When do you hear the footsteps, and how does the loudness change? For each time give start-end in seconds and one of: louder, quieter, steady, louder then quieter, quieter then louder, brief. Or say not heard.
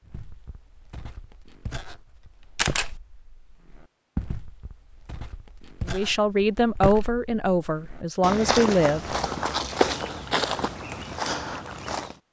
0.1-12.2 louder.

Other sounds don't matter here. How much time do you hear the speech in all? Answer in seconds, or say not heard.
3 s.